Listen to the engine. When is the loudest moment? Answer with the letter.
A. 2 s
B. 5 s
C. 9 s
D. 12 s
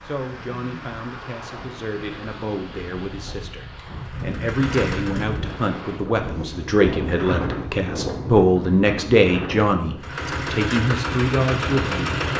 D.